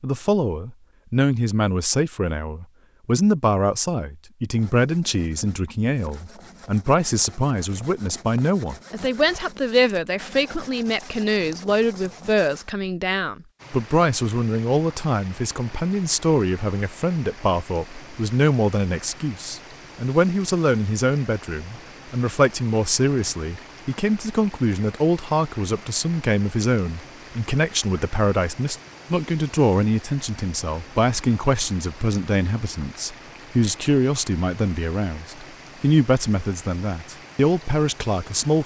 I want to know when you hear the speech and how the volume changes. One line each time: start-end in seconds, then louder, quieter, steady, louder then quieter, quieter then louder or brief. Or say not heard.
0.0-38.6 steady.